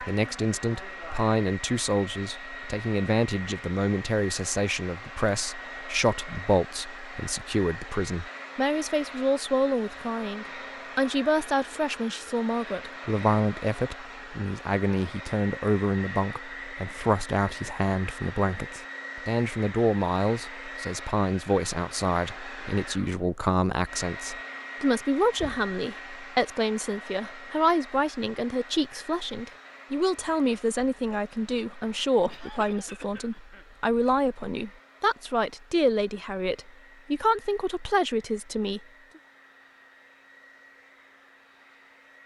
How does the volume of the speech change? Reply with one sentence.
The volume of the speech stays about the same.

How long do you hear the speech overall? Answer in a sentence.
You can hear the speech for 39 seconds altogether.